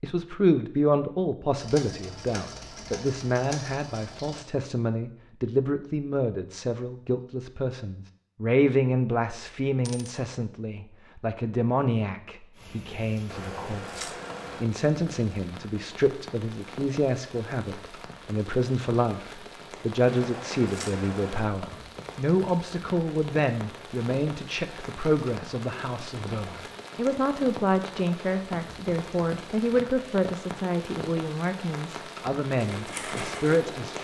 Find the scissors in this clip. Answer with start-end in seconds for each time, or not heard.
13.2-14.7, 20.1-21.5.